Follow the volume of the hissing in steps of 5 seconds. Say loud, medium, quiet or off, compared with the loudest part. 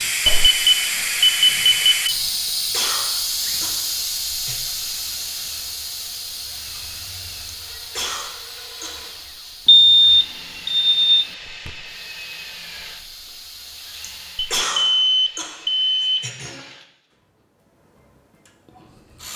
loud, medium, quiet, off.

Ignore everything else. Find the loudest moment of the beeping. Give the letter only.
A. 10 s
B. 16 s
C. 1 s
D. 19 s
A.